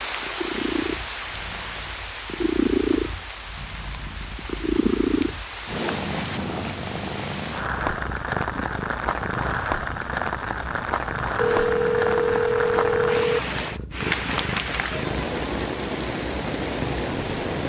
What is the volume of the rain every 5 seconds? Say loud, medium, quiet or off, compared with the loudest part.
medium, loud, loud, loud.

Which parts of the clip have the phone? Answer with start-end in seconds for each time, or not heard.
11.3-13.4.